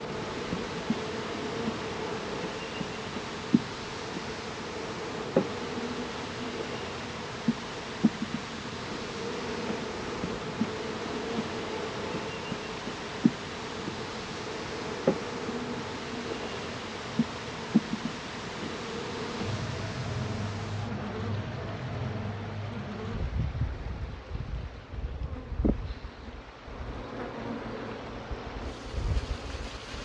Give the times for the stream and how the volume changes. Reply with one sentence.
You can hear the stream from 0.0 to 30.0 s, getting quieter.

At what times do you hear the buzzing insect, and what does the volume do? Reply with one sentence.
You can hear the buzzing insect from 0.0 to 30.0 s, getting quieter.